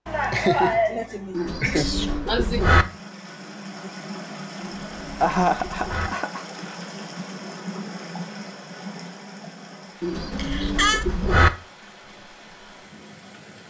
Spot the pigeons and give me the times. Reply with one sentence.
The pigeons can be heard from 1.3 to 2.9 s, from 4.6 to 6.1 s and from 10.0 to 11.5 s.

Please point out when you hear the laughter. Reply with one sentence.
The laughter can be heard from 0.1 to 2.6 s, from 5.2 to 6.5 s and from 10.3 to 11.1 s.